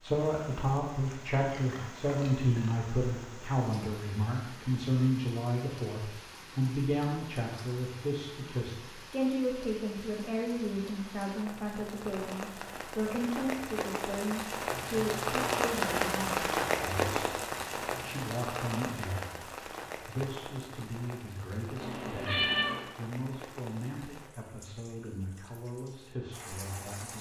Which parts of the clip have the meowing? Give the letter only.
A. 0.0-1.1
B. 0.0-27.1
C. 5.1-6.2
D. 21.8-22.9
D.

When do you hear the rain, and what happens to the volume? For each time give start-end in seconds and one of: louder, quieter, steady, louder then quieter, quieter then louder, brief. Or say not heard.
0.0-27.1 louder then quieter.